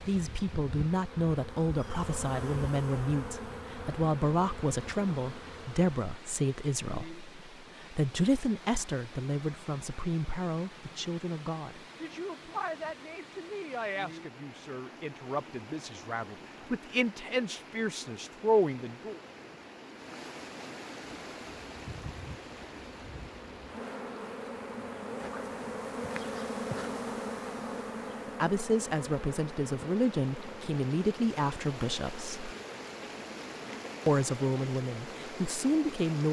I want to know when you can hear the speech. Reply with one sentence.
The speech can be heard from 0.0 to 19.2 s, from 28.4 to 32.5 s and from 34.0 to 36.2 s.